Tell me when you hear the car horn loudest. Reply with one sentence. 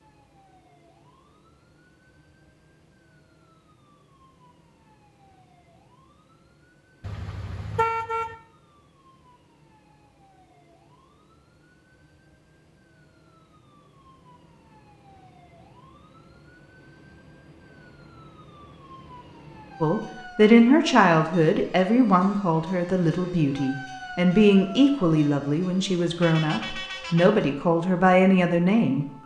The volume of the car horn peaks at 8 seconds.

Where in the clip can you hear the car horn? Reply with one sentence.
The car horn can be heard from 7.0 to 8.3 s and from 26.2 to 27.4 s.